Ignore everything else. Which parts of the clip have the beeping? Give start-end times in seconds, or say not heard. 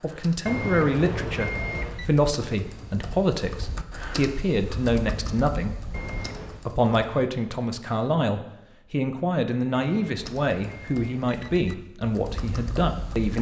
0.5-2.1, 5.9-6.7, 9.8-11.7.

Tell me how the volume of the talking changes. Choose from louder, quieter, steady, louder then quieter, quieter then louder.
steady.